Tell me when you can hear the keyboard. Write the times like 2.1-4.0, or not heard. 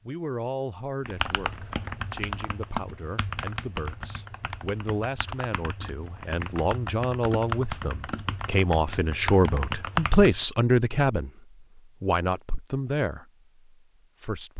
1.0-10.4.